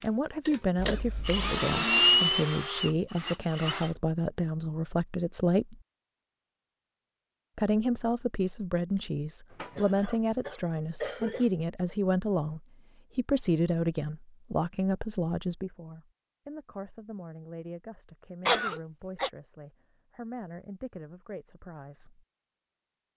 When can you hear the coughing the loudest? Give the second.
19 s.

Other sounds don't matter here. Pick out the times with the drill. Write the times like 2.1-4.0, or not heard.
0.0-4.0.